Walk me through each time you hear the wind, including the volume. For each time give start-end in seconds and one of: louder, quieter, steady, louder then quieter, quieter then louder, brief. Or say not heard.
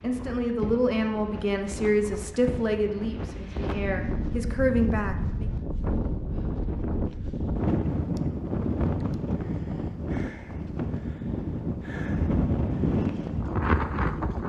0.0-14.4 louder.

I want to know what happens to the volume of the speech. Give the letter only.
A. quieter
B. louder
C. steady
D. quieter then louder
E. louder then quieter
D.